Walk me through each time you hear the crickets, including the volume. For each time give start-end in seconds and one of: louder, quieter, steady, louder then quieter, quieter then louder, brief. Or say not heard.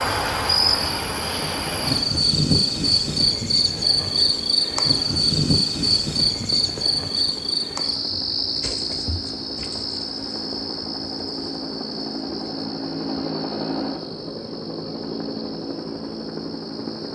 0.0-17.1 quieter.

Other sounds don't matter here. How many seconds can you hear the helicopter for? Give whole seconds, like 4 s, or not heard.
17 s.